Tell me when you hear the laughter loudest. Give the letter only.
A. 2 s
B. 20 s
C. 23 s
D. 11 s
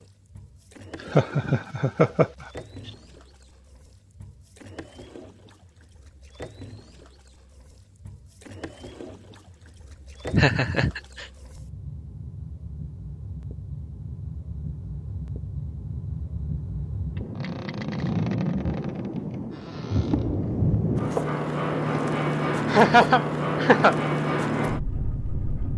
C.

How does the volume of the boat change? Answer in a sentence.
The volume of the boat goes up.